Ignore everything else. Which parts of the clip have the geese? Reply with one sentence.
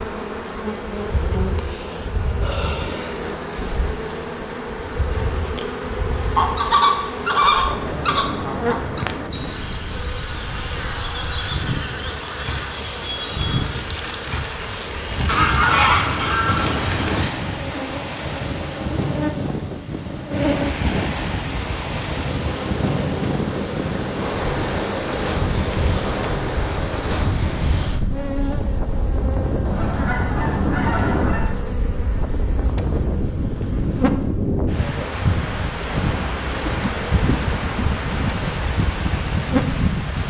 The geese can be heard from 6.3 to 9.1 s, from 15.2 to 17.3 s and from 29.6 to 31.4 s.